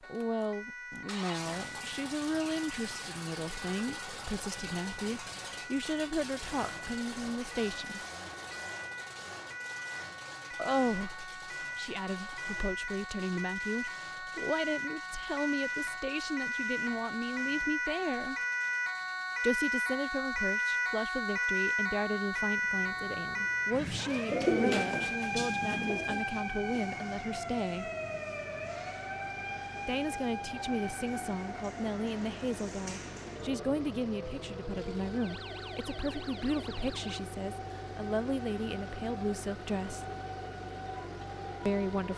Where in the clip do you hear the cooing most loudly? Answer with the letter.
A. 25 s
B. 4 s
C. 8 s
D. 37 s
A.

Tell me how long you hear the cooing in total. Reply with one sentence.
The cooing can be heard for 2 seconds in total.